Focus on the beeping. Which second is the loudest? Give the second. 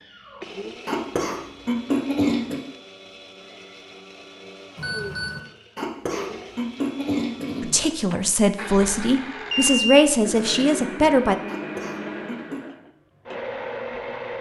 10 s.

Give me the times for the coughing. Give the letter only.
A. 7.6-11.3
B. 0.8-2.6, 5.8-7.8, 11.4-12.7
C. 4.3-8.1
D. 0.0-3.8
B.